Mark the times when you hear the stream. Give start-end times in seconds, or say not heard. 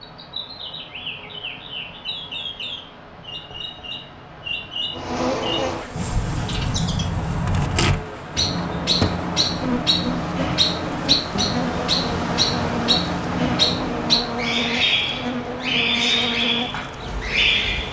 0.0-17.8.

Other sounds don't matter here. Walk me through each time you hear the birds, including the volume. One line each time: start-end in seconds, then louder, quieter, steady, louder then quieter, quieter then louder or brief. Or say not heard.
0.0-17.8 louder.